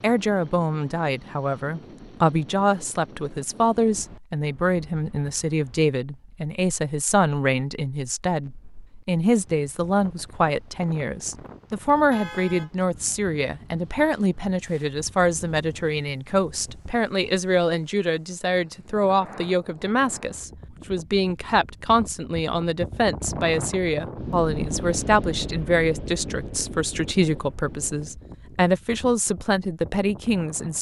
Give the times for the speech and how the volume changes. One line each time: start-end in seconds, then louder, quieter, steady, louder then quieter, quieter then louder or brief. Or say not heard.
0.0-30.7 steady.